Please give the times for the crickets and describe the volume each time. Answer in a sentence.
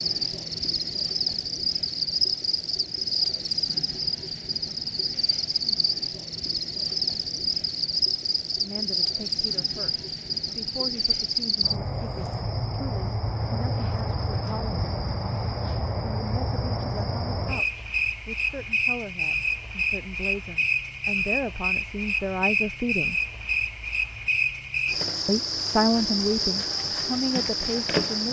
The crickets can be heard from 0.0 to 28.2 s, at a steady volume.